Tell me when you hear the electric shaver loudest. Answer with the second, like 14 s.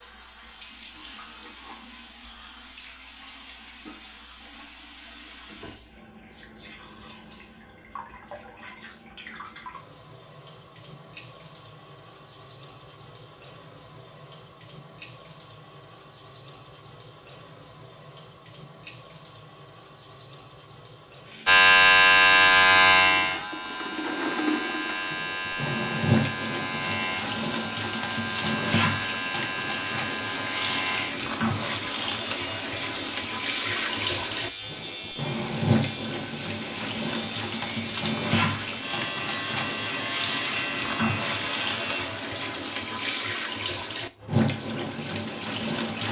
22 s.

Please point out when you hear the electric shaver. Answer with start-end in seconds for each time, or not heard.
21.4-42.1.